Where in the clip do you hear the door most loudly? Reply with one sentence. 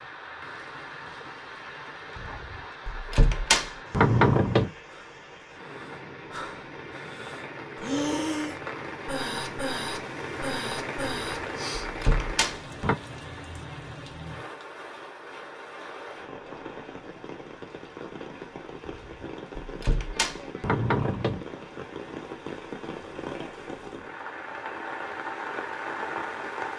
The volume of the door peaks at 4 seconds.